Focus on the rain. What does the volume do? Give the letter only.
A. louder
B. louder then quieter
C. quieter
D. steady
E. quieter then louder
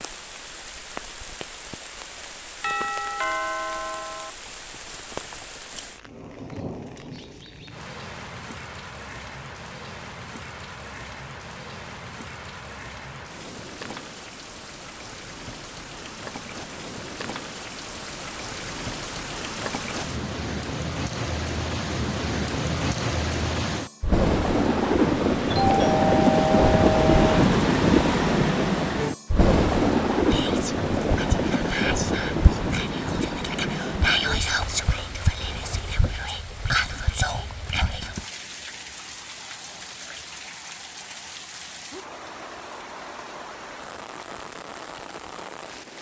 B.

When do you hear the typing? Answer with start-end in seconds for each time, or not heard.
not heard.